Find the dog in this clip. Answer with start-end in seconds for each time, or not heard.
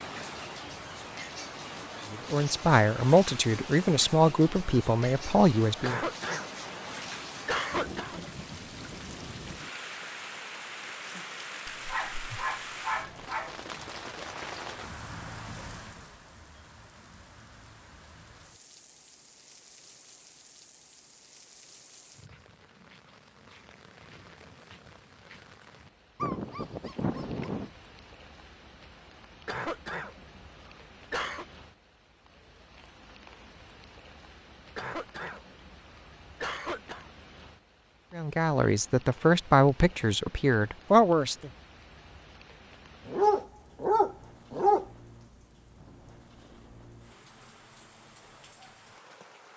11.7-13.6, 26.2-27.7, 43.0-44.9.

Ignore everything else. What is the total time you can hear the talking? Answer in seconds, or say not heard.
7 s.